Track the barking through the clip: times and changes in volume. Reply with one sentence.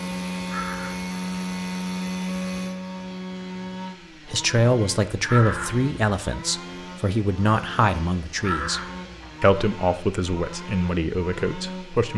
You can't hear the barking here.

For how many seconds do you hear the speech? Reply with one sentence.
You can hear the speech for 7 seconds altogether.